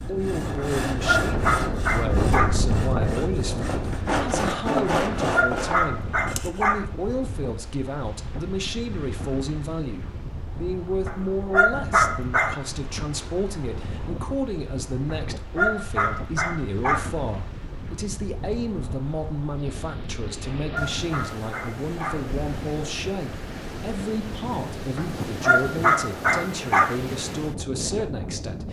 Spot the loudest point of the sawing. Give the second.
5 s.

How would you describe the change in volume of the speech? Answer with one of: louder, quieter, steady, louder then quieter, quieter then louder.
steady.